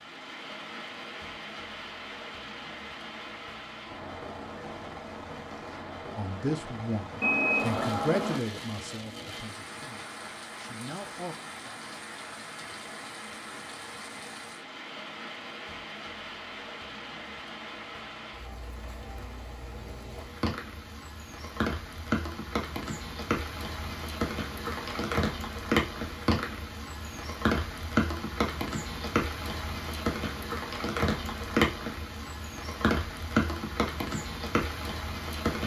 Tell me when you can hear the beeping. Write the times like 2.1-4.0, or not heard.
7.2-8.4.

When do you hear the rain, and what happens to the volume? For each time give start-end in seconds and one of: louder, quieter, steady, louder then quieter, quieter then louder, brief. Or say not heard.
0.0-35.6 louder.